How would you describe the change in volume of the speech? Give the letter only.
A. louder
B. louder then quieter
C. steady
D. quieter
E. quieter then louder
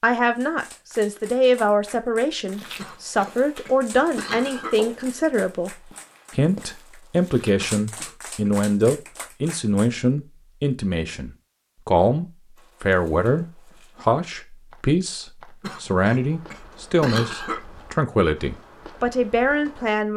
C.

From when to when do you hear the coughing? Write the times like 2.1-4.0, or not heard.
2.8-4.8, 7.5-8.5, 15.6-17.6.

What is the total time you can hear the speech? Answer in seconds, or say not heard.
20 s.